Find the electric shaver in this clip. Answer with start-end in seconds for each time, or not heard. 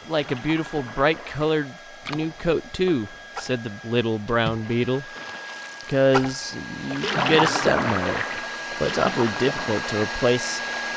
not heard.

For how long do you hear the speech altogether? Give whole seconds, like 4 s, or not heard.
10 s.